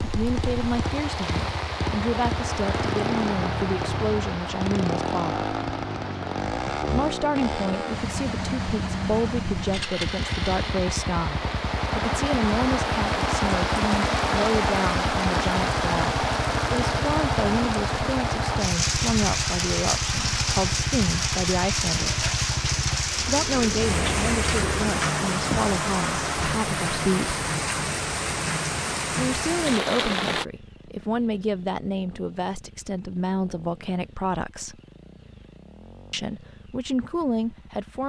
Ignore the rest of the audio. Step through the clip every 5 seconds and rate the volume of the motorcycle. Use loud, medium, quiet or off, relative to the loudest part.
loud, loud, loud, loud, loud, off, quiet, quiet.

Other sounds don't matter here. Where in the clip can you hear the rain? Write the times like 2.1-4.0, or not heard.
0.0-30.4.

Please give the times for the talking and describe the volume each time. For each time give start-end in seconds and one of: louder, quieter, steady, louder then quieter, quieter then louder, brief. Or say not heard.
0.0-5.5 steady
6.9-22.2 steady
23.2-27.4 steady
29.1-34.8 steady
36.1-38.0 brief.